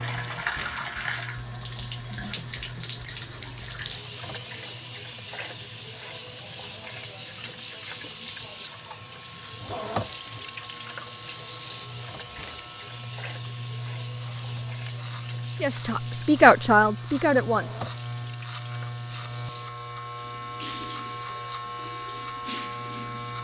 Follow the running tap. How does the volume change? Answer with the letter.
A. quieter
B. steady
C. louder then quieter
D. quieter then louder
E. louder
A.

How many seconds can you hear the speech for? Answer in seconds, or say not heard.
2 s.